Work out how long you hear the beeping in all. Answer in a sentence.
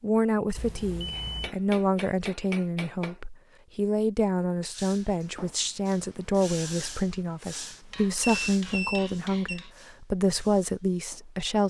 You can hear the beeping for 2 seconds altogether.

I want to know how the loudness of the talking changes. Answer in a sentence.
The volume of the talking stays about the same.